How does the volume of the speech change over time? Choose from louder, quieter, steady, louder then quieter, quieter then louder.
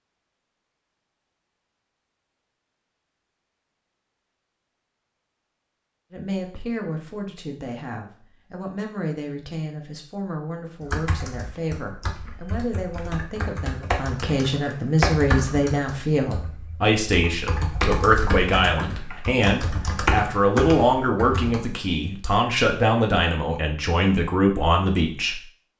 louder.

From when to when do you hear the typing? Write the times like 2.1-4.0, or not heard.
10.8-21.6.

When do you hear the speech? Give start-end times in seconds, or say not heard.
6.1-25.4.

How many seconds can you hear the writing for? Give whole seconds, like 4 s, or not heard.
not heard.